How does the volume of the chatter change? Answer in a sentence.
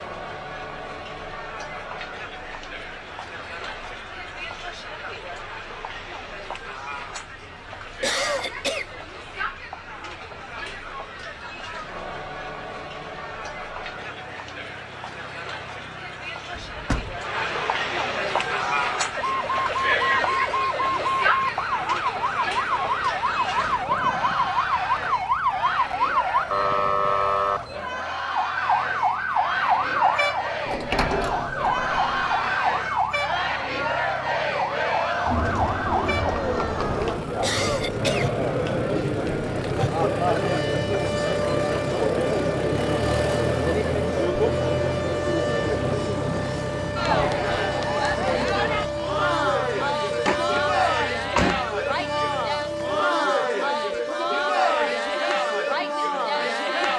The volume of the chatter goes up.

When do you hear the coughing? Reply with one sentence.
The coughing can be heard from 8.0 to 8.8 s and from 37.4 to 38.2 s.